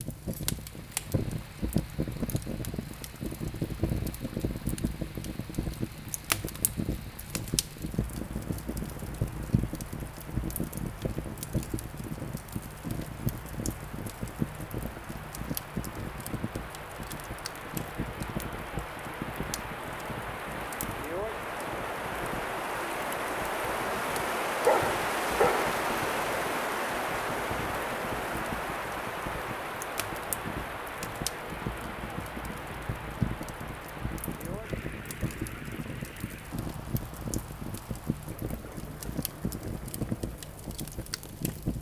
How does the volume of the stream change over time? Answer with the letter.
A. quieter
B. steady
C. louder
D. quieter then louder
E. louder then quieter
E.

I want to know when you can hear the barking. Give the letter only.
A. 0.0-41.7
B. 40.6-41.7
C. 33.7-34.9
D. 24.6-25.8
D.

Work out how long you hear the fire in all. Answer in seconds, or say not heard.
42 s.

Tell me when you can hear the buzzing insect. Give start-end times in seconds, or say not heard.
not heard.